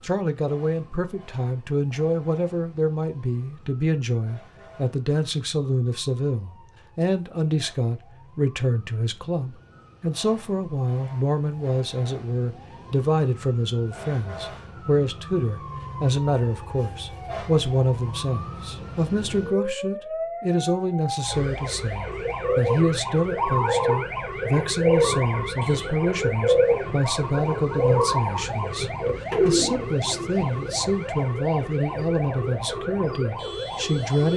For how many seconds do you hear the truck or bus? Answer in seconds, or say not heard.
not heard.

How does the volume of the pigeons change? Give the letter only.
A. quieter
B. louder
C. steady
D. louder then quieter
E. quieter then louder
C.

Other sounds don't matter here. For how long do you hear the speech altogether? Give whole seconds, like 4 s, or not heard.
34 s.